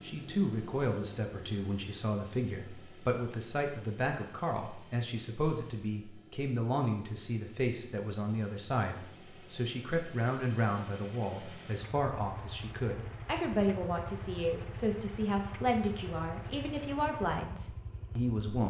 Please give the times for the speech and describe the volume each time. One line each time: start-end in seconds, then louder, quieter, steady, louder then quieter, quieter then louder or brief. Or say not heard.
0.0-18.6 steady.